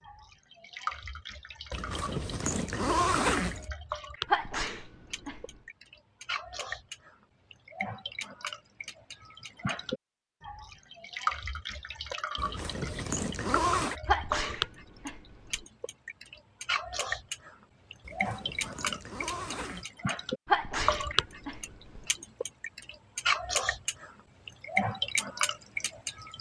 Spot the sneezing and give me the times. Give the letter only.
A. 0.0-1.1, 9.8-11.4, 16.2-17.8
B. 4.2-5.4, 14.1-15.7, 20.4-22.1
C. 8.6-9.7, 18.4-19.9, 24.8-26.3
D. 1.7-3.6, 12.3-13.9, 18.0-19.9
B.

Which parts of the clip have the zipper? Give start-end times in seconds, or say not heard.
1.7-3.6, 12.3-13.9, 18.0-19.9.